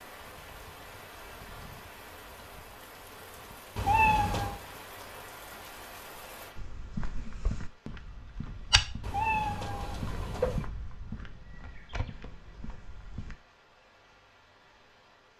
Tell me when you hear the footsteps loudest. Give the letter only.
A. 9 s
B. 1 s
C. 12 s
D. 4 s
A.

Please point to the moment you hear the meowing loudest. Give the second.
4 s.